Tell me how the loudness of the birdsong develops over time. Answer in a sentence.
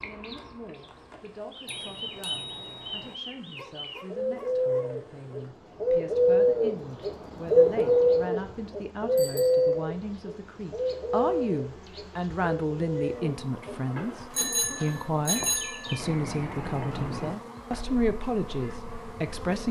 The volume of the birdsong goes up, then down.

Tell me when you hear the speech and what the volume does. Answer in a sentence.
The speech can be heard from 0.0 to 19.6 s, getting louder.